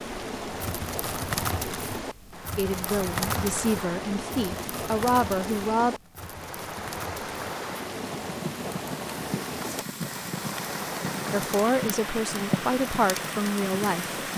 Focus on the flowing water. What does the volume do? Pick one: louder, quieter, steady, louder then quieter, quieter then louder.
steady.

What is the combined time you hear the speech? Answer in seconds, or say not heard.
6 s.